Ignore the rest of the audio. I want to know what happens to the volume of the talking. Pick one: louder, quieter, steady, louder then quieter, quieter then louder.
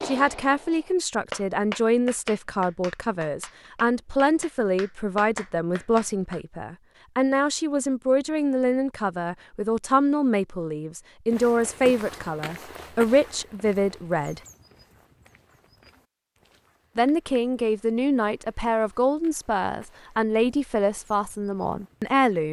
steady.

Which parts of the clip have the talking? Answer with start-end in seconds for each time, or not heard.
0.0-14.4, 16.9-22.4.